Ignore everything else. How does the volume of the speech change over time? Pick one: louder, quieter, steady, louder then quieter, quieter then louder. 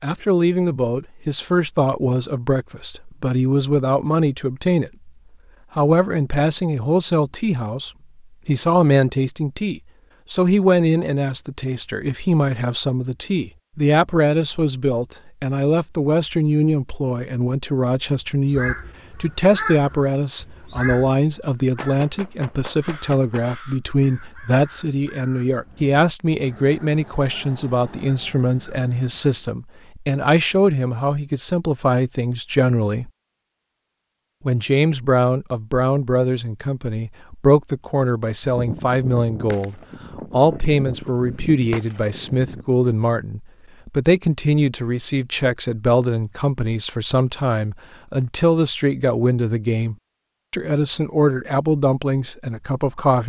steady.